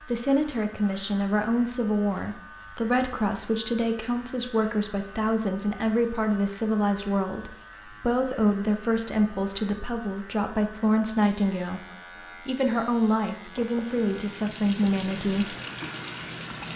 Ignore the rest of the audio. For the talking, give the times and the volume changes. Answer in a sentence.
The talking can be heard from 0.1 to 15.6 s, at a steady volume.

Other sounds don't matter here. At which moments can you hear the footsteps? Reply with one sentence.
The footsteps can't be heard in this clip.